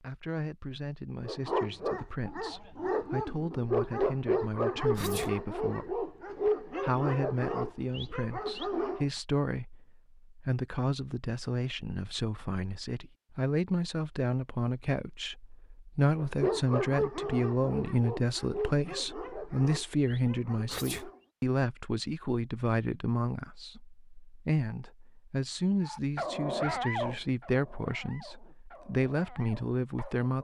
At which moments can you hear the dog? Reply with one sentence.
You can hear the dog from 1.2 to 9.1 s, from 16.1 to 21.2 s and from 25.8 to 30.3 s.